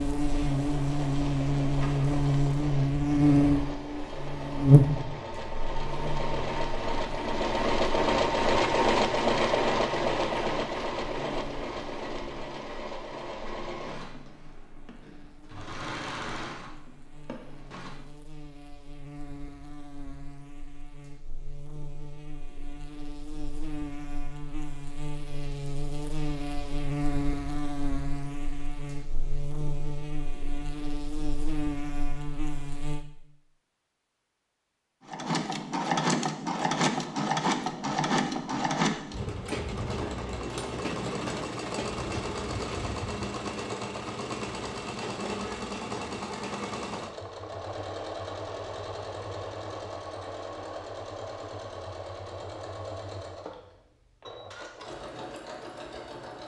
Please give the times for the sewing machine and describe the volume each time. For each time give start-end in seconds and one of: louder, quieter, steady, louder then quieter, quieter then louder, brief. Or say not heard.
0.0-18.1 louder then quieter
35.0-56.4 quieter.